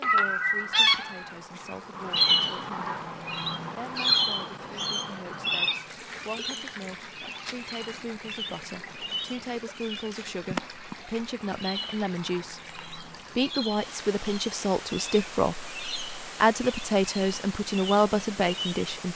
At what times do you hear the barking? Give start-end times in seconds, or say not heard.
not heard.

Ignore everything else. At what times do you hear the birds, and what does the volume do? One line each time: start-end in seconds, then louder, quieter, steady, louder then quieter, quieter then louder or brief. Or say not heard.
0.0-18.9 quieter.